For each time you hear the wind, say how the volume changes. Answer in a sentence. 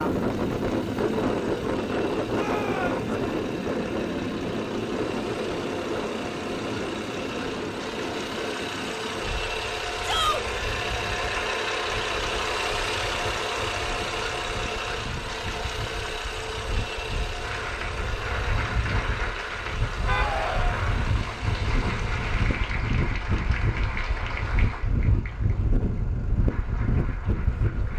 You can hear the wind from 0.0 to 27.9 s, getting quieter then louder.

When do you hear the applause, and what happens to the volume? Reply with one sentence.
The applause can be heard from 17.4 to 27.9 s, getting quieter.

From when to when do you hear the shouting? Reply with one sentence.
You can hear the shouting from 2.3 to 3.0 s, from 10.0 to 10.4 s and from 20.0 to 20.8 s.